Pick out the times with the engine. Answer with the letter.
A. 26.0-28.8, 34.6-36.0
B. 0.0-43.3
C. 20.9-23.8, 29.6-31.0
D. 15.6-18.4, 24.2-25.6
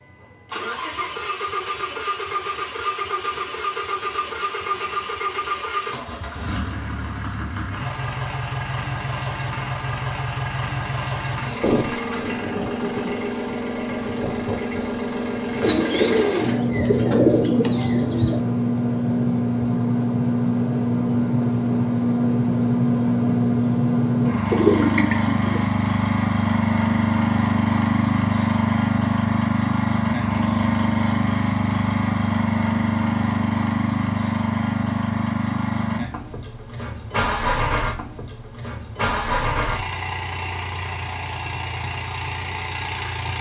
B.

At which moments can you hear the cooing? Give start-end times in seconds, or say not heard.
15.6-18.4, 24.2-25.6.